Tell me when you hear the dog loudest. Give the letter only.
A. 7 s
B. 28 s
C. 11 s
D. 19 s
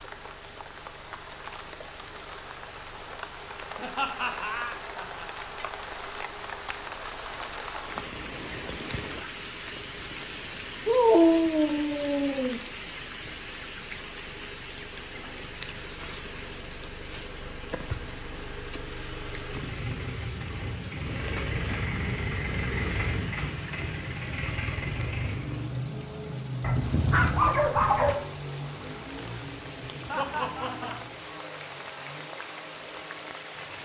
C.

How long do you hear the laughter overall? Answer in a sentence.
You can hear the laughter for 3 seconds altogether.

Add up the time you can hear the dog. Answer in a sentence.
The dog can be heard for 3 seconds in total.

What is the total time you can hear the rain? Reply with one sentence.
The rain can be heard for 34 seconds in total.